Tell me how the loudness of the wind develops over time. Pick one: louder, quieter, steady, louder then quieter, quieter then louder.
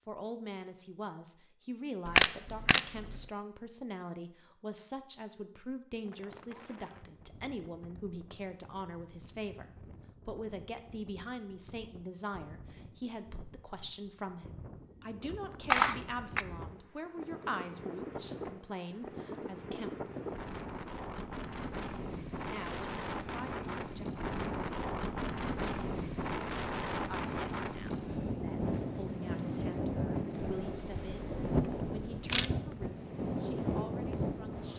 louder.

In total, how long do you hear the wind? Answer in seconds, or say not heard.
29 s.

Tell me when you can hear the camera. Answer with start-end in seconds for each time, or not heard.
2.0-3.2, 15.7-16.4, 30.4-32.5.